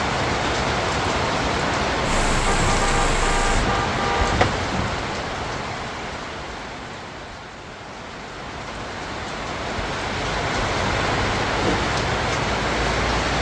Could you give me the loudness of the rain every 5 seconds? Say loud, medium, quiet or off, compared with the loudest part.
loud, medium, loud.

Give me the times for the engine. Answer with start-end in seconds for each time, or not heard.
2.0-3.6.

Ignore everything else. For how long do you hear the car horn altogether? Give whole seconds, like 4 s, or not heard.
2 s.